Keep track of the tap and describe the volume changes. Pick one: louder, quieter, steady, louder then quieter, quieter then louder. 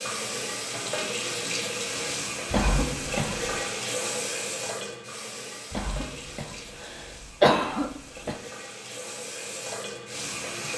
quieter then louder.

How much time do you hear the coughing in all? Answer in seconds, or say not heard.
4 s.